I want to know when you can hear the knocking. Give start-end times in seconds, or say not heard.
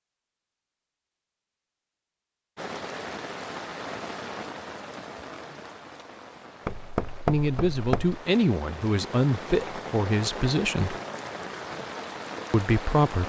6.7-8.2.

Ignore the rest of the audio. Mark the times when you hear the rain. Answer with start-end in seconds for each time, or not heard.
2.5-13.2.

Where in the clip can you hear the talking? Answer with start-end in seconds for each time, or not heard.
7.2-10.9, 12.5-13.2.